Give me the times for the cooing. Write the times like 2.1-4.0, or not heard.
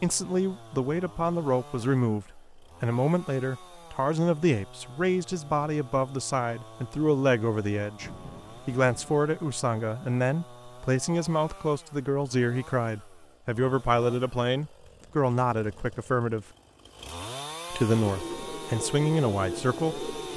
18.0-20.3.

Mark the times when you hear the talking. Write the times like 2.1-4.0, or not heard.
0.0-16.4, 17.7-20.1.